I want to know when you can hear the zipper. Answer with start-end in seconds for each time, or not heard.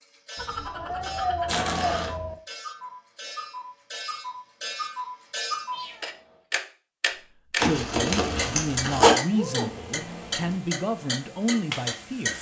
1.4-2.1, 7.5-9.2.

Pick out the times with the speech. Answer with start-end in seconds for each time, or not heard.
7.2-12.3.